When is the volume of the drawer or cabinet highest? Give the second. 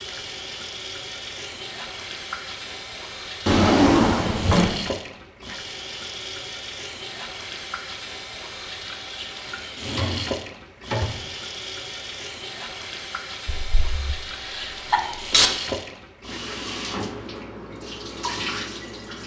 4 s.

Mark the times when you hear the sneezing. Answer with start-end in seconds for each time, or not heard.
13.4-15.5.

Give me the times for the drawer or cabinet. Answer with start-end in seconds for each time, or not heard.
3.5-4.8, 9.8-11.2.